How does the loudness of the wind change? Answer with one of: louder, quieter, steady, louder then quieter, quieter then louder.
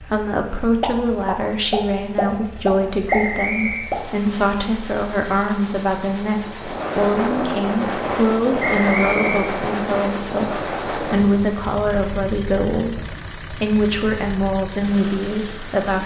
quieter.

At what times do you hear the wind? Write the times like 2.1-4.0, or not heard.
6.4-16.0.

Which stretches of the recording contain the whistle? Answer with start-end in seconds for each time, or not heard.
3.0-3.9, 8.6-9.6.